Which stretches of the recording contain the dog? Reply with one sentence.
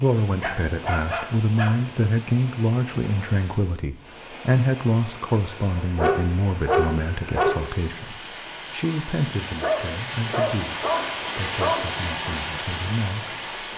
The dog can be heard from 0.4 to 1.7 s, from 6.0 to 7.5 s and from 9.6 to 11.8 s.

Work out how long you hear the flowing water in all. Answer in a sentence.
The flowing water can be heard for 14 seconds in total.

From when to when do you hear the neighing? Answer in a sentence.
You can't hear the neighing here.